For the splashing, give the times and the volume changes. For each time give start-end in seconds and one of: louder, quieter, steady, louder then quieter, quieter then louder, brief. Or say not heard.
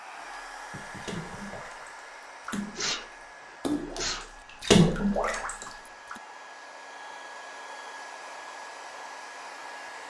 0.2-6.2 louder.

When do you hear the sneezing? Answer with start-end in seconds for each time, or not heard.
2.8-4.3.